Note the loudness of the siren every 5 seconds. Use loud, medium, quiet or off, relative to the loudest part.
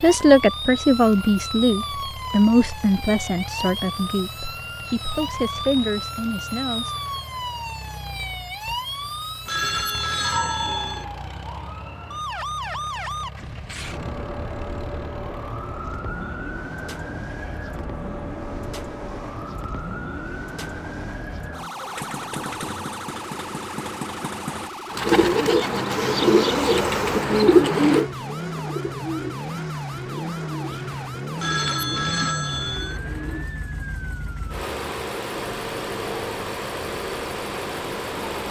loud, loud, loud, loud, loud, medium, medium, medium.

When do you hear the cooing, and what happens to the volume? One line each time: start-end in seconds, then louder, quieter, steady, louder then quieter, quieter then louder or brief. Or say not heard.
24.9-33.5 quieter.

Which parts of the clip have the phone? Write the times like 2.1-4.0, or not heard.
9.4-11.1, 31.4-33.0.